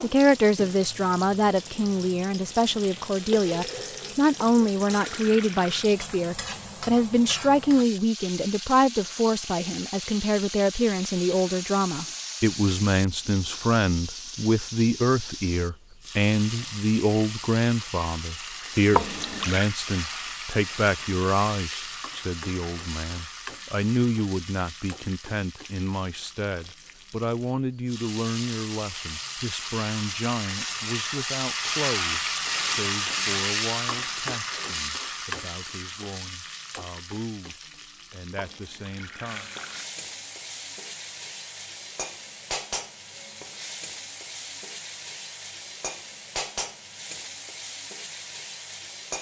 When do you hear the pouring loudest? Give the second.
19 s.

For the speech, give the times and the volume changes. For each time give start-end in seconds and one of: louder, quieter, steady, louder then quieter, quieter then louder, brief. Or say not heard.
0.0-39.5 quieter.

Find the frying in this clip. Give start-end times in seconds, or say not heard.
0.0-49.1.